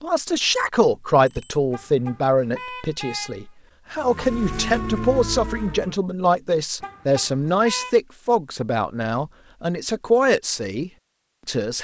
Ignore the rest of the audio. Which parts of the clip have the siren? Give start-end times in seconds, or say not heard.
4.0-6.0.